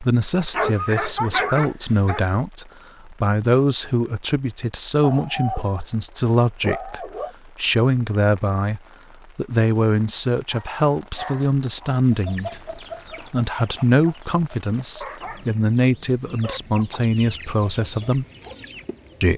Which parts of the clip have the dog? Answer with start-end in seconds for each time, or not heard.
0.5-2.3, 5.0-7.3, 10.5-12.1, 15.0-16.6.